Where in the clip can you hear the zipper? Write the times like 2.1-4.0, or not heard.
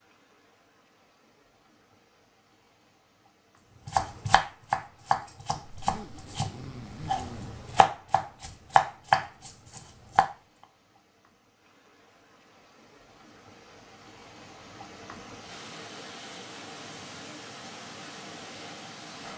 5.8-7.5.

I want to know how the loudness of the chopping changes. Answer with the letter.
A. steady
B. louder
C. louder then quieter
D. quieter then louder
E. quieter
D.